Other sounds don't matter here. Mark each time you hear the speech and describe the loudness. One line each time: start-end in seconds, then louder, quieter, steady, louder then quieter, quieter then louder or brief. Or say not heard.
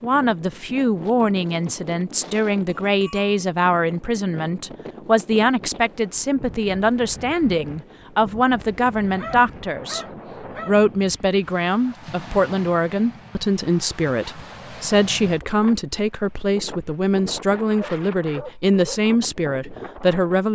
0.0-10.1 steady
10.7-20.5 steady.